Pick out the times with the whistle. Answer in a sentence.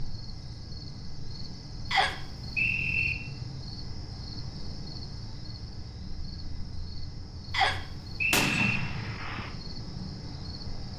The whistle can be heard from 1.9 to 3.1 s and from 7.5 to 8.8 s.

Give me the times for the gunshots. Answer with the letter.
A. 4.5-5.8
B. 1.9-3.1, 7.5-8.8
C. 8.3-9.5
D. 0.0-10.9
C.